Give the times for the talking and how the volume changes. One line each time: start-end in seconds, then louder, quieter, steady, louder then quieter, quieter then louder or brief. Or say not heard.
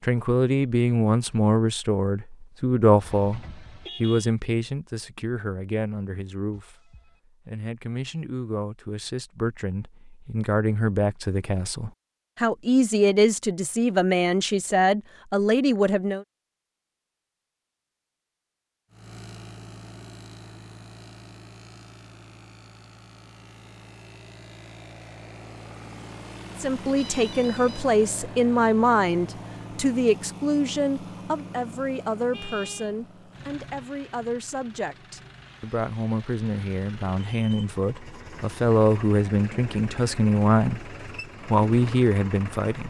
0.0-16.2 quieter then louder
26.6-42.8 quieter then louder.